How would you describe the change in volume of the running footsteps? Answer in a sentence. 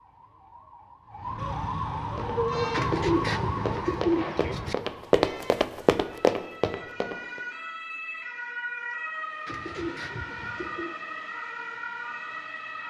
The volume of the running footsteps goes up.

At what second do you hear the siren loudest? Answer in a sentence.
The volume of the siren peaks at 3 seconds.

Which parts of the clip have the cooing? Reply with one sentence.
The cooing can be heard from 2.7 to 4.8 s and from 9.4 to 10.9 s.